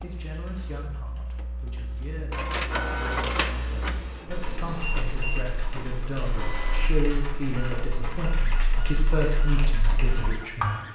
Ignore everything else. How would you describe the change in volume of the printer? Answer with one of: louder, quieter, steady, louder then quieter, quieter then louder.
louder then quieter.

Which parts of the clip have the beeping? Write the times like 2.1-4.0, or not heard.
4.5-5.5.